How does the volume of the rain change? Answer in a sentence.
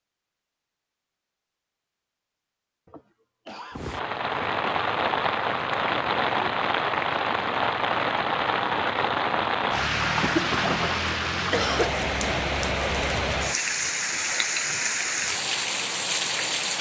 The loudness of the rain stays about the same.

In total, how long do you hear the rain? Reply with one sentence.
The rain can be heard for 13 seconds in total.